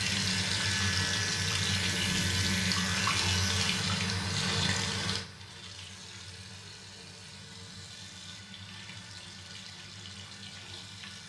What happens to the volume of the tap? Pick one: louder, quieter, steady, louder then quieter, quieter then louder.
quieter.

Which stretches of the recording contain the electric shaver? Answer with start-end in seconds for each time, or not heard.
0.0-3.7.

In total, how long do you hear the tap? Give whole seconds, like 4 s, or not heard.
11 s.